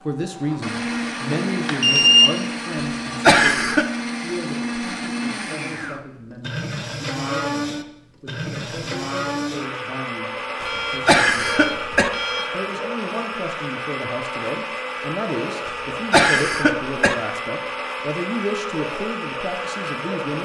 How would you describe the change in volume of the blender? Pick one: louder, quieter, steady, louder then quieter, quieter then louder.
steady.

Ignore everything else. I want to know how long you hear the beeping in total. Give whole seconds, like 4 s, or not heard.
3 s.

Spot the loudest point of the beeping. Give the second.
2 s.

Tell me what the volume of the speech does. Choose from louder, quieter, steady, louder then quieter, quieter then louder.
quieter then louder.